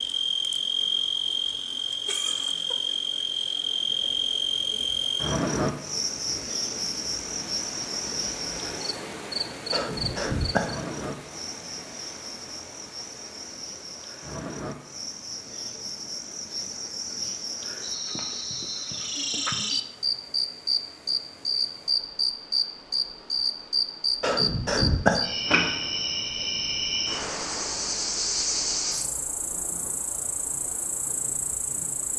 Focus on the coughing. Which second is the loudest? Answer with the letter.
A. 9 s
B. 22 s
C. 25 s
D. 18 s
C.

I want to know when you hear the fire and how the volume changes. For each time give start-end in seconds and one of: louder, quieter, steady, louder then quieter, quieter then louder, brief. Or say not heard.
not heard.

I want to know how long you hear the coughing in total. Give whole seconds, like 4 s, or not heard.
2 s.